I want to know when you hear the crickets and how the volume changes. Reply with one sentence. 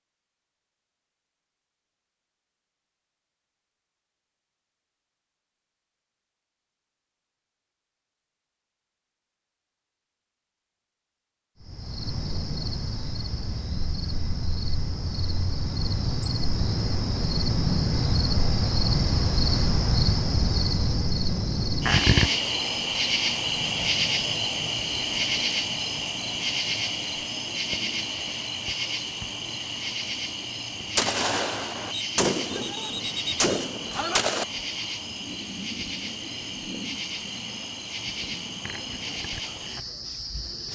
The crickets can be heard from 11.6 to 40.7 s, getting louder then quieter.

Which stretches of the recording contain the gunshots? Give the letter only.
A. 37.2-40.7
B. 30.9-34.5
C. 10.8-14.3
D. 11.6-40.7
B.